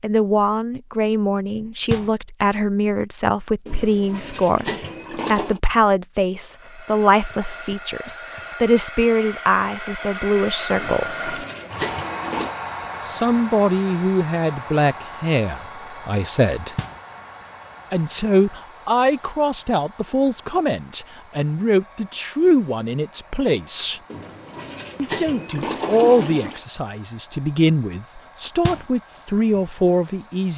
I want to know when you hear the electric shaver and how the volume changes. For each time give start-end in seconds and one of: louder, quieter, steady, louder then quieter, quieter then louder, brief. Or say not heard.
not heard.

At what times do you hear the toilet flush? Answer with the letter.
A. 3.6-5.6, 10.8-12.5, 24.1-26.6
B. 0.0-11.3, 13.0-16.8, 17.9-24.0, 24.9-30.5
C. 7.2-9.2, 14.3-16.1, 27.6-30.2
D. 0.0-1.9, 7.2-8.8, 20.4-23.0
A.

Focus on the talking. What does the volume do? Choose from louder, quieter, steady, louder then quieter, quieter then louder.
steady.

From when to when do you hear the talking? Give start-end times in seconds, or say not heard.
0.0-11.3, 13.0-16.8, 17.9-24.0, 24.9-30.5.